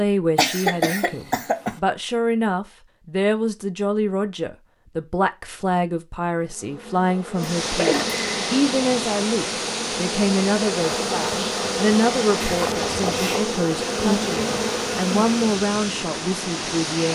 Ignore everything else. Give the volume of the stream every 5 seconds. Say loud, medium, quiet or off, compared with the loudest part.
off, loud, loud, loud.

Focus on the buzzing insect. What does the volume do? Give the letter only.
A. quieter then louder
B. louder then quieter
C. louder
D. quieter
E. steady
C.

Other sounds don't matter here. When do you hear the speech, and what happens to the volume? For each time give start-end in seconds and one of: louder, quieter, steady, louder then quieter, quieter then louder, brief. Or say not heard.
0.0-17.0 steady.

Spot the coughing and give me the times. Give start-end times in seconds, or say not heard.
0.3-1.8, 7.7-8.4, 12.4-13.4.